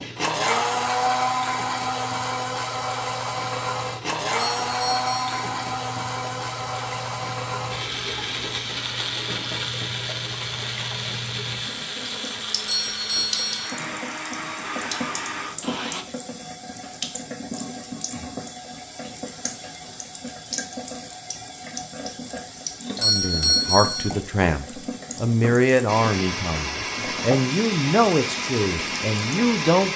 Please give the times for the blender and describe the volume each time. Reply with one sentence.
The blender can be heard from 0.0 to 16.1 s, getting quieter; and from 25.9 to 29.9 s, at a steady volume.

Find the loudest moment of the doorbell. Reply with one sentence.
The loudest moment of the doorbell is at 24 seconds.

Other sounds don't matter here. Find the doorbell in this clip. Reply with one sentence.
The doorbell can be heard from 4.3 to 5.3 s, from 12.7 to 13.8 s and from 23.0 to 24.1 s.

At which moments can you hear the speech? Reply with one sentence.
The speech can be heard from 23.0 to 29.9 s.